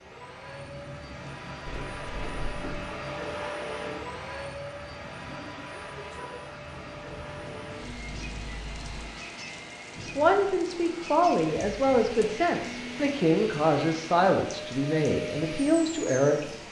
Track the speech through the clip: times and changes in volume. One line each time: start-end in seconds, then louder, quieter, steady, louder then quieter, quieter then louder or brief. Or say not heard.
10.2-16.4 steady.